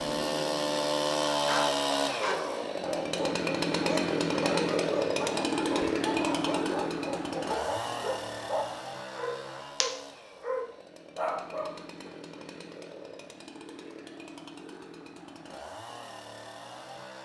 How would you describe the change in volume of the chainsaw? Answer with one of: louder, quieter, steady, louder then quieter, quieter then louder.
quieter.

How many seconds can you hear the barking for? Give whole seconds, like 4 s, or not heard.
11 s.